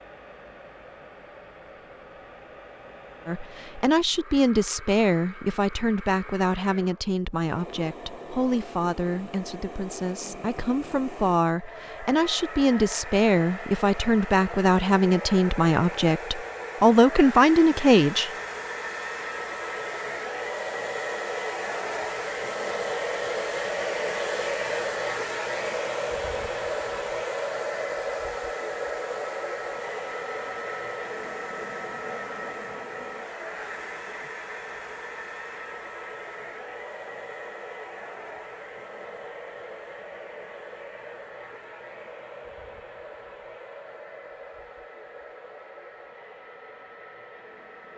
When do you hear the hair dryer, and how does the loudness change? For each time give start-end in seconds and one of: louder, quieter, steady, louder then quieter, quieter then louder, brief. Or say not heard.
0.0-47.9 louder then quieter.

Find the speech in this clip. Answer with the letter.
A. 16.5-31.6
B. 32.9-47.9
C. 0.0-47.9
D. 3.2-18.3
D.